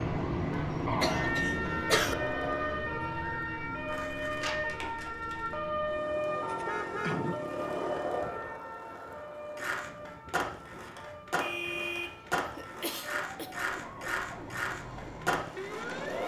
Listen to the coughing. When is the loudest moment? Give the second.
2 s.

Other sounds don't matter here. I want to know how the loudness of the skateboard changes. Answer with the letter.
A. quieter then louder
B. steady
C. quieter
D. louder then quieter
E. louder
E.